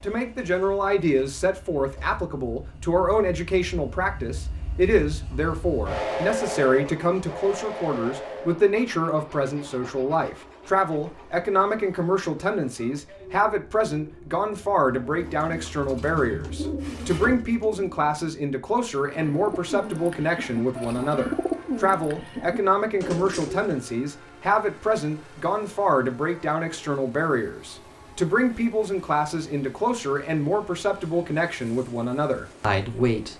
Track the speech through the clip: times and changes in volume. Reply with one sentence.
The speech can be heard from 0.0 to 33.3 s, at a steady volume.